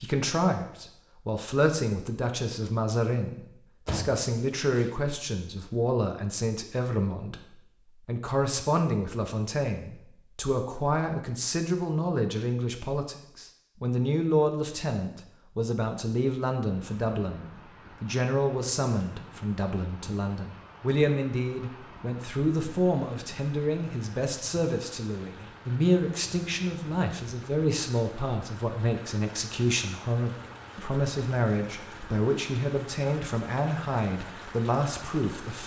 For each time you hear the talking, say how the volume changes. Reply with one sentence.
The talking can be heard from 0.0 to 35.6 s, at a steady volume.